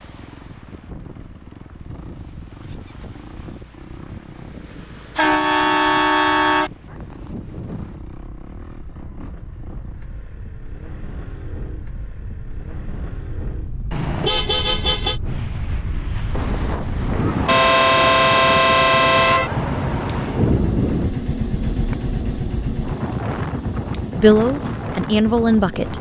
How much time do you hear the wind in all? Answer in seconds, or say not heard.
26 s.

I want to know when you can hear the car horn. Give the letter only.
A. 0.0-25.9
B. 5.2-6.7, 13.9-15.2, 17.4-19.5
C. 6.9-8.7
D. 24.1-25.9
B.